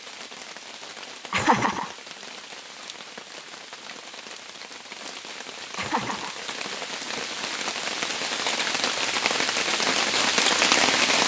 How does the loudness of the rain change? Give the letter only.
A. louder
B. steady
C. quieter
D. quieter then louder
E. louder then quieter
A.